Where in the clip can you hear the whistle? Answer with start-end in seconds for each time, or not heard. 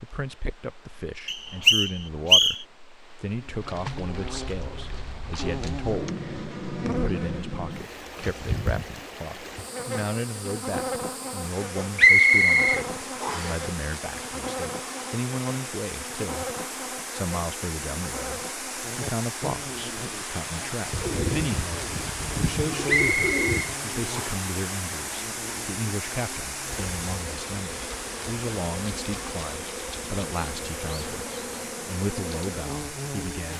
1.2-2.6, 11.9-13.6, 22.9-24.2.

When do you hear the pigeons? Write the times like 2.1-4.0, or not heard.
20.9-23.8.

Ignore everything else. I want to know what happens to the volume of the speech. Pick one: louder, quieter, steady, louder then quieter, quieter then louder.
steady.